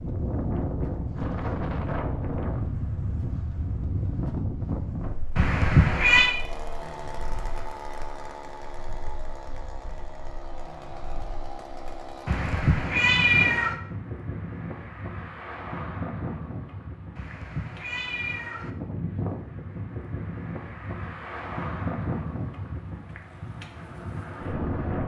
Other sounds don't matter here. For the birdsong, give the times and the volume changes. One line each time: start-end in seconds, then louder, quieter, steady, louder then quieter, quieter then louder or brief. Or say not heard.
not heard.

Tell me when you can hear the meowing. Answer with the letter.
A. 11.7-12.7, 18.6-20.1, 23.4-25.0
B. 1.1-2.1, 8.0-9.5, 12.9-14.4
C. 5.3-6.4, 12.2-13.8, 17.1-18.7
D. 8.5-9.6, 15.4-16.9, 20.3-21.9
C.